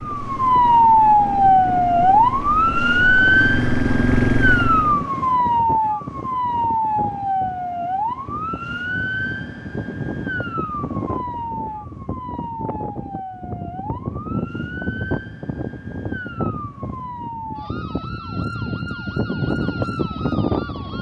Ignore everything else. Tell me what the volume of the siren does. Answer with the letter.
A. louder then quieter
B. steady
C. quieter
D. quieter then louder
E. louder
C.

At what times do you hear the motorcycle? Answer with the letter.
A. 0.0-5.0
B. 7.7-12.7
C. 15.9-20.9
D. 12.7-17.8
A.